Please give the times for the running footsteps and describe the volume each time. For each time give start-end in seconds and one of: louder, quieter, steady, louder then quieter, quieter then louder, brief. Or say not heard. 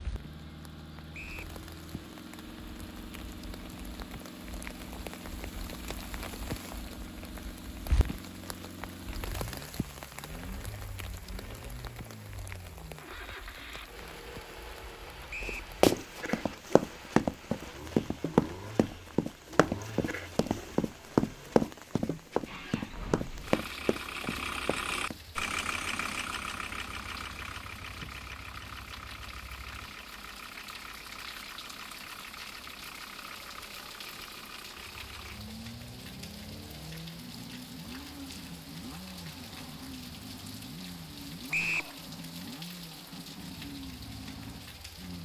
15.4-25.2 quieter.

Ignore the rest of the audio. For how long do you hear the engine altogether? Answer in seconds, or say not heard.
45 s.